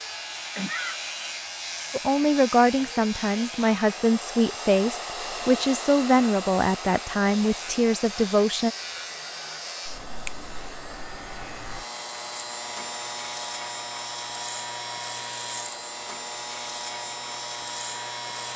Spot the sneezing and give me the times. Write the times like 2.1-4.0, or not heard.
0.6-1.0.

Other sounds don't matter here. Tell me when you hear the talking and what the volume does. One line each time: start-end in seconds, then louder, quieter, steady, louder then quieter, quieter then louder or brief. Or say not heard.
1.9-8.7 steady.